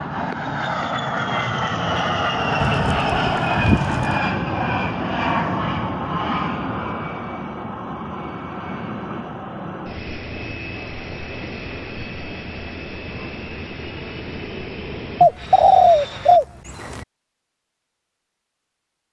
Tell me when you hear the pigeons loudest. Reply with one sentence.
The loudest moment of the pigeons is at 16 seconds.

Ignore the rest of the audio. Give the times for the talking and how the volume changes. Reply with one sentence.
You can't hear the talking here.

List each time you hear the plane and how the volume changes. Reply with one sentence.
The plane can be heard from 0.0 to 16.4 s, getting quieter.